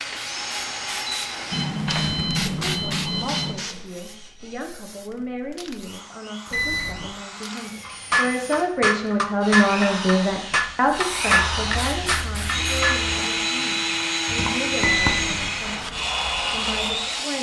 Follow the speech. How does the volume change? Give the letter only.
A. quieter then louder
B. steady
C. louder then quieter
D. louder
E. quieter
C.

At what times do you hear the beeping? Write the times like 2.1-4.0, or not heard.
1.5-3.5, 6.5-7.1, 14.8-15.6.